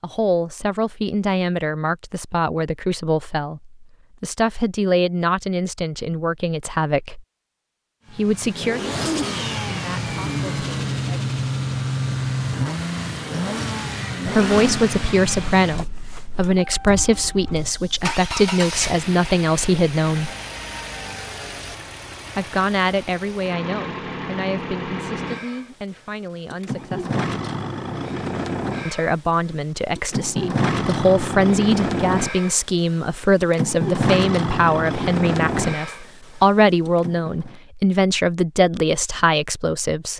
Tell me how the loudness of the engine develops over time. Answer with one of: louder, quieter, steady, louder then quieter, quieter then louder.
quieter then louder.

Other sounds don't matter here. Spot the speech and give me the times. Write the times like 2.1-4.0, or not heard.
0.0-7.2, 8.1-11.2, 14.2-20.3, 22.4-27.2, 28.9-40.1.